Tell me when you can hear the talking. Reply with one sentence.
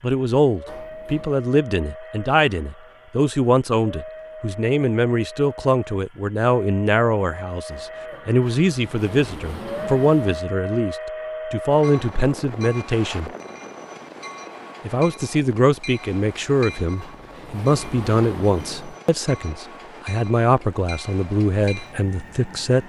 You can hear the talking from 0.0 to 13.3 s and from 14.8 to 22.8 s.